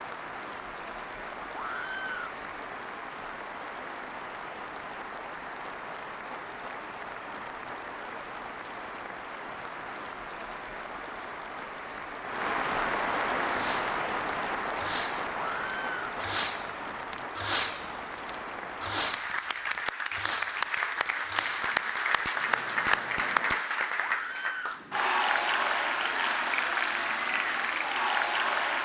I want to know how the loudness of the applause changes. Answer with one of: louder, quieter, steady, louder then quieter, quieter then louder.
louder.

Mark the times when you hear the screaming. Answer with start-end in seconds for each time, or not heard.
1.5-2.4, 15.5-16.0, 24.0-24.9.